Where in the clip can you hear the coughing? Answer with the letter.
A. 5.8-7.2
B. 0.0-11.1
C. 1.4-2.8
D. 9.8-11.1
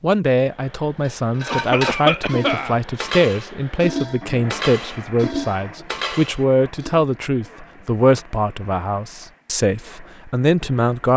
C.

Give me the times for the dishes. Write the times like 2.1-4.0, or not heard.
1.0-7.0.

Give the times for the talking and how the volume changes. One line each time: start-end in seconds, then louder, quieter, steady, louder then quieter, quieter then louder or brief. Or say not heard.
0.0-11.1 steady.